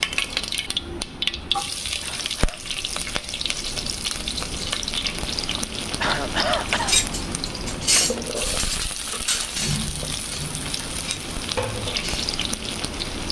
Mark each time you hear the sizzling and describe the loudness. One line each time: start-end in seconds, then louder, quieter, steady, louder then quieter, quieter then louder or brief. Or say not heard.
0.0-13.2 steady.